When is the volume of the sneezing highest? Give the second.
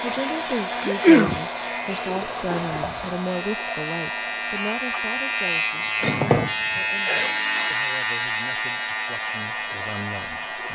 1 s.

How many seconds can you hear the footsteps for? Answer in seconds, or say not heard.
not heard.